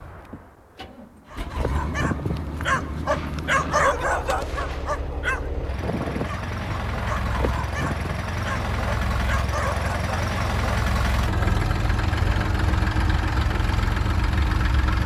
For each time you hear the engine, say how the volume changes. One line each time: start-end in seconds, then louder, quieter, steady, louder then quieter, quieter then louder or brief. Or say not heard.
0.0-15.0 louder.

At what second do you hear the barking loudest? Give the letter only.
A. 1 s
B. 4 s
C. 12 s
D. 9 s
B.